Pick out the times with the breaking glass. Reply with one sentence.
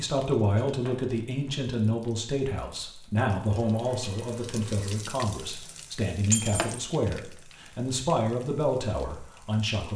You can hear the breaking glass from 0.6 to 1.1 s and from 6.3 to 6.8 s.